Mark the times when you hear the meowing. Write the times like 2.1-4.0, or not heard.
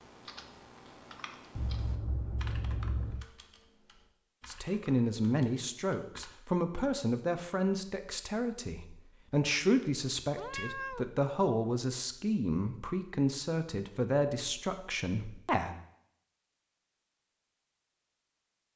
1.6-3.2, 10.3-11.1.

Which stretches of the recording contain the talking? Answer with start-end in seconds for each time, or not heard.
4.5-15.8.